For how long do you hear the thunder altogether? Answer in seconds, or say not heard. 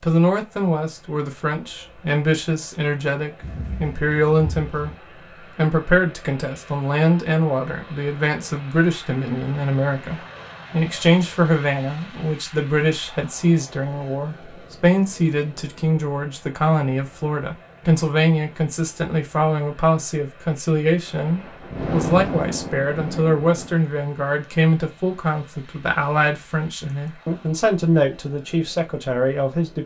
4 s.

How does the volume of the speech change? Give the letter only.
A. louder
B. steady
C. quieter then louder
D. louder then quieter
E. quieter
B.